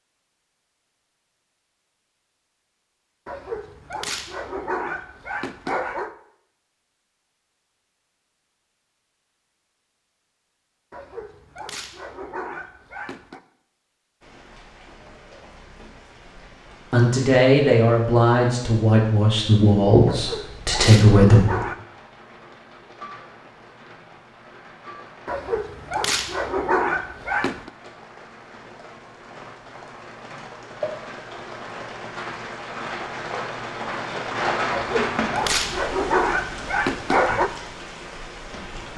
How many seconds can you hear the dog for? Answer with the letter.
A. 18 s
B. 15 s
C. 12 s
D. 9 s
C.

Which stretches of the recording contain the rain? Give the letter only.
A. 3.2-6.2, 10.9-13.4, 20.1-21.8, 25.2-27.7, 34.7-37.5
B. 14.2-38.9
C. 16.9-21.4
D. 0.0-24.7
B.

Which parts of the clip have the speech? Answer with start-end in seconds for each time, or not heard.
16.9-21.4.